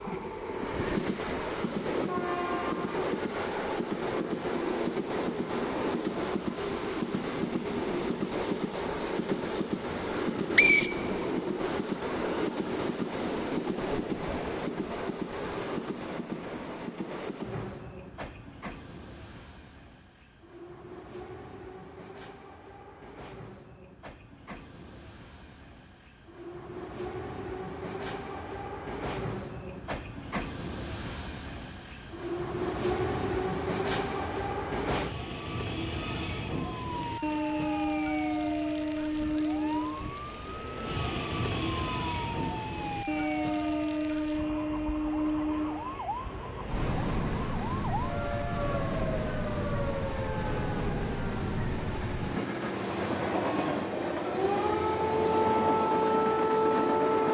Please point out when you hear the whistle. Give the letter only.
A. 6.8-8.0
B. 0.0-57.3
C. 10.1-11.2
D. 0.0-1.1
C.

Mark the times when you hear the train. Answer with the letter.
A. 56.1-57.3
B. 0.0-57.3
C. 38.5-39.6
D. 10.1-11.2
B.